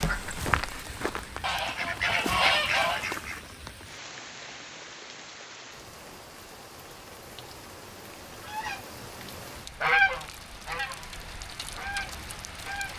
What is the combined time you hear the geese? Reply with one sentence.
You can hear the geese for 8 seconds altogether.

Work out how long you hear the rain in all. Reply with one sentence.
You can hear the rain for 13 seconds altogether.